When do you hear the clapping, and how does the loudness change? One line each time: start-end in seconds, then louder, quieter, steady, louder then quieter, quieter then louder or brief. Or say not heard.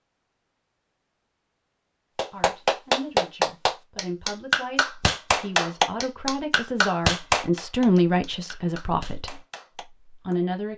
2.1-10.3 quieter.